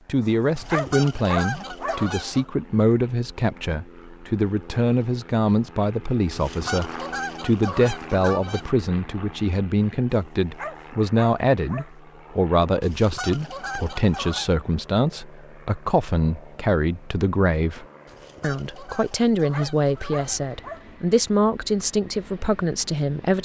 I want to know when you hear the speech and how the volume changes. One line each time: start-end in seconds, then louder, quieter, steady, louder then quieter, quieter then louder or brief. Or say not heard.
0.1-23.3 steady.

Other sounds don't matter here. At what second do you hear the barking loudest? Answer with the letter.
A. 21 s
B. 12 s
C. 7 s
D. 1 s
D.